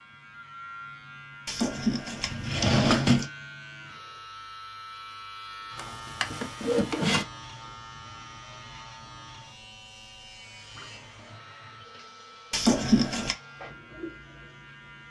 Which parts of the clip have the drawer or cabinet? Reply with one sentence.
The drawer or cabinet can be heard from 1.4 to 3.3 s, from 5.8 to 7.2 s and from 12.5 to 13.3 s.